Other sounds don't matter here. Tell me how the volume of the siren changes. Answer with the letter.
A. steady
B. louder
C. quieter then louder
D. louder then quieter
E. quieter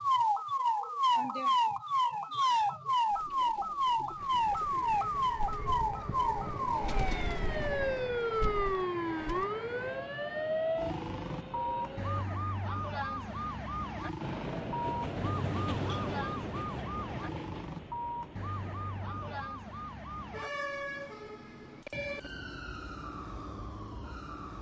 E.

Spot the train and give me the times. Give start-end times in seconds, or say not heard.
4.2-12.2, 14.2-19.5.